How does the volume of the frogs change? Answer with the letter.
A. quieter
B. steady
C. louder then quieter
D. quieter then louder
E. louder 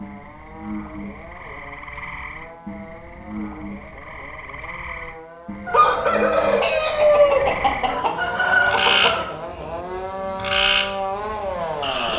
E.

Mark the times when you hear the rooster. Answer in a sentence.
The rooster can be heard from 5.7 to 9.2 s.